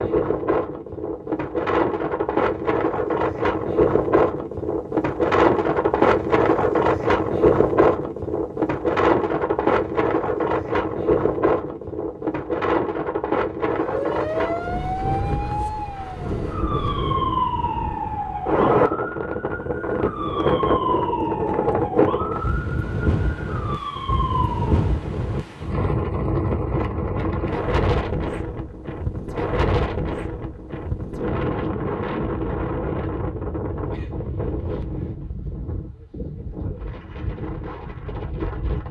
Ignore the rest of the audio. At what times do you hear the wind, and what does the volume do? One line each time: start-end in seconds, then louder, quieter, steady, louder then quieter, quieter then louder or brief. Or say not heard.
0.0-38.8 quieter.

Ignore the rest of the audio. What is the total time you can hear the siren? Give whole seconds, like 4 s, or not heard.
11 s.